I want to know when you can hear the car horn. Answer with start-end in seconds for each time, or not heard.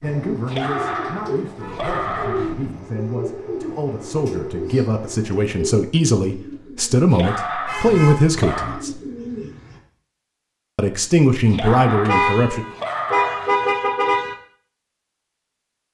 1.6-2.7, 7.7-8.4, 12.1-14.3.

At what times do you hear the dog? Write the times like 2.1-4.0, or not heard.
0.5-2.5, 7.1-8.8, 11.5-13.6.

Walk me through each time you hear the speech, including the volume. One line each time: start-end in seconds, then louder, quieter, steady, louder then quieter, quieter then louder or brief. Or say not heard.
0.0-9.0 louder
10.8-12.7 brief.